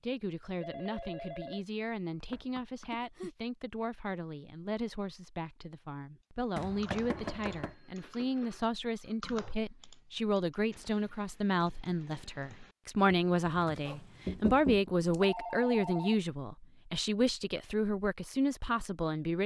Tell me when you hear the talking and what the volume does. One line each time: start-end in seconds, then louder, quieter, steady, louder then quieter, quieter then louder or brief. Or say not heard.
0.0-19.4 louder.